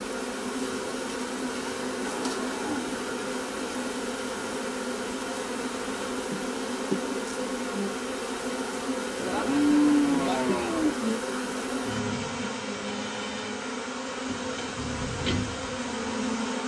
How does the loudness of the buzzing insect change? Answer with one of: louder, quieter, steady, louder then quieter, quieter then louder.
steady.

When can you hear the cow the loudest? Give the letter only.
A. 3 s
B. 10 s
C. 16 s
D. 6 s
B.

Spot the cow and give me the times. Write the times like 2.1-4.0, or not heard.
1.6-3.4, 9.2-10.9.